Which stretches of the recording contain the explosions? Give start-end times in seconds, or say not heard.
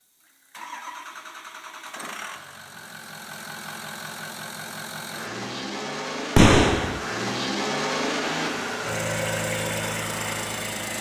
6.3-7.0.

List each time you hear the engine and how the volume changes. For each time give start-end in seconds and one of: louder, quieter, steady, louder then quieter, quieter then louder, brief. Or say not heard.
0.0-10.9 louder.